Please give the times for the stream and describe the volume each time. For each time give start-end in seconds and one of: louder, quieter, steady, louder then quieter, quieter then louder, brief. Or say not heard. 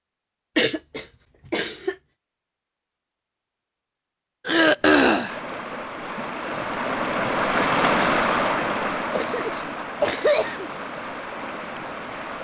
5.2-12.3 louder then quieter.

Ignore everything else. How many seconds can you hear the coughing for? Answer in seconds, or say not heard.
4 s.